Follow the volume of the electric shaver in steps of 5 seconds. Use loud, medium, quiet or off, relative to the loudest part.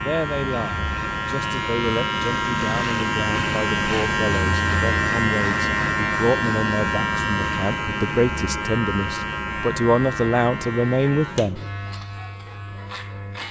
loud, loud, medium.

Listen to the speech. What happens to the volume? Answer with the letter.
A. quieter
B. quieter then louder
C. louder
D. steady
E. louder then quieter
C.